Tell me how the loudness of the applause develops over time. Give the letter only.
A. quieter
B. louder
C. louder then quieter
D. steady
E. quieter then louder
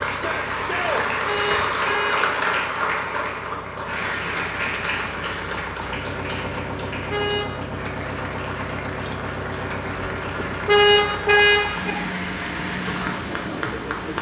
A.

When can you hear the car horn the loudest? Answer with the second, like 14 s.
11 s.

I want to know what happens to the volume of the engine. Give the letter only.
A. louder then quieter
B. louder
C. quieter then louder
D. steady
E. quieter
B.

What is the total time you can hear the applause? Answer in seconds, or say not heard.
14 s.